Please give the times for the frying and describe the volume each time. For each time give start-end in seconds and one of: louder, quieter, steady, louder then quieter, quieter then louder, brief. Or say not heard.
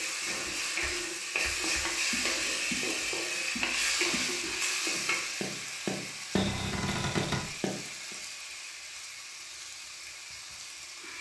0.0-11.1 quieter.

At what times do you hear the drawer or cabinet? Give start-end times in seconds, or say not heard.
6.3-7.5.